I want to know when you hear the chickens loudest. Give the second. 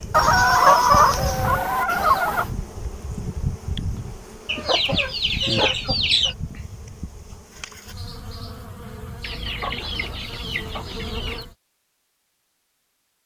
1 s.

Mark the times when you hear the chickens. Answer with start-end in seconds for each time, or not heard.
0.1-2.5, 4.5-6.3, 9.2-11.4.